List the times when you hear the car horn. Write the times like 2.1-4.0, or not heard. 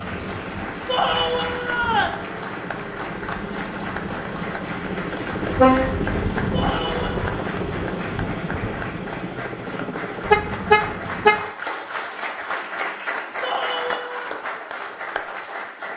5.5-6.3, 10.3-11.4.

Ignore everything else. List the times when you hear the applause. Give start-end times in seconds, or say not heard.
0.0-15.9.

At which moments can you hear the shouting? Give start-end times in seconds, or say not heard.
0.8-2.2, 6.5-7.3, 13.4-14.3.